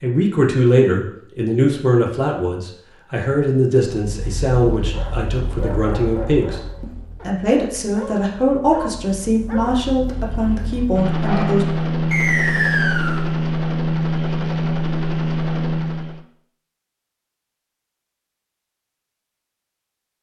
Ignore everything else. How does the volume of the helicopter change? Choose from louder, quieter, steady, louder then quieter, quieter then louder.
quieter then louder.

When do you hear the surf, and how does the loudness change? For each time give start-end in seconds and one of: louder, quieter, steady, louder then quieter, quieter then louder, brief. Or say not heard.
not heard.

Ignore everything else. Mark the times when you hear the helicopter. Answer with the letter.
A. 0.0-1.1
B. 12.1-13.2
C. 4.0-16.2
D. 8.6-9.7
C.